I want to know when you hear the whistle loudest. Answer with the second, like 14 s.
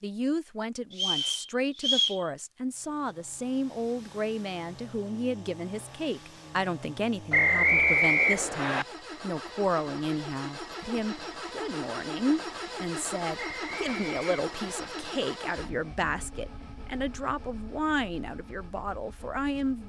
8 s.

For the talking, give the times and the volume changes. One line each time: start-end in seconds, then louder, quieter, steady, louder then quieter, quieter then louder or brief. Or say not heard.
0.0-19.8 steady.